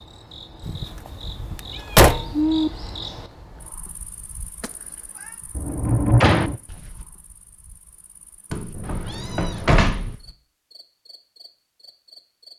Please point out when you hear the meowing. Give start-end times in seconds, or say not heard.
1.7-2.7, 4.6-5.3, 8.8-9.8.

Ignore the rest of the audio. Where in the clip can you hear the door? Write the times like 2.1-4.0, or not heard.
0.6-2.4, 5.5-6.5, 8.5-10.2.